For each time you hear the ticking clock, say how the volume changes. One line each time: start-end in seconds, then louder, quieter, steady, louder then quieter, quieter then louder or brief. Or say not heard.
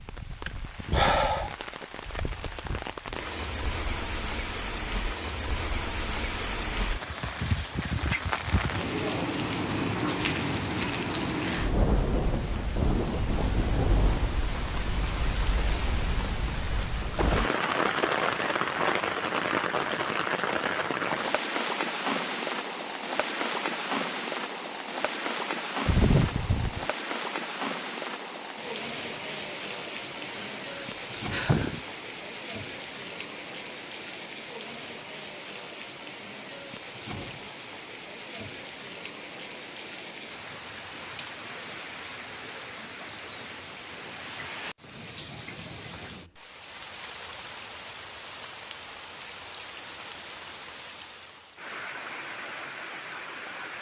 not heard.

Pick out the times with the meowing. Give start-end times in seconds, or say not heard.
25.9-26.9.